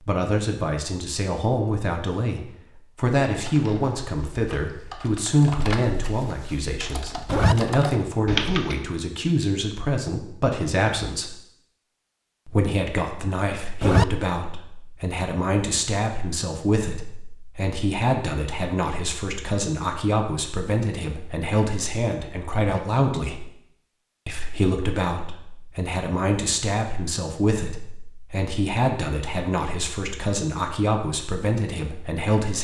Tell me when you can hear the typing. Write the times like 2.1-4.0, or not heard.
3.4-8.8.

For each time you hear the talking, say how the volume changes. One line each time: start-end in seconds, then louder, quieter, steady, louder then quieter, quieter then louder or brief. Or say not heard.
0.0-11.4 steady
12.4-23.5 steady
24.2-32.5 steady.